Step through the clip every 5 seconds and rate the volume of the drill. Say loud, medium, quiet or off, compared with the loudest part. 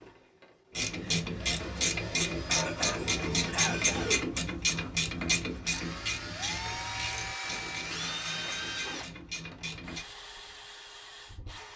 medium, loud, medium.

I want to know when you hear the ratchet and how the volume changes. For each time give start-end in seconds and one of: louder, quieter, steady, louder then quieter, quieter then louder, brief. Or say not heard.
0.8-10.1 quieter.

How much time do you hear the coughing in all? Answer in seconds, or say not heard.
2 s.